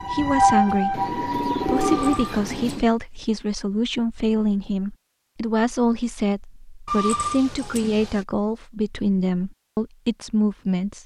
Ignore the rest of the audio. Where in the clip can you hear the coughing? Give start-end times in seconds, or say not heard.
not heard.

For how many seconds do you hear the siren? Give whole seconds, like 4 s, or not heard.
2 s.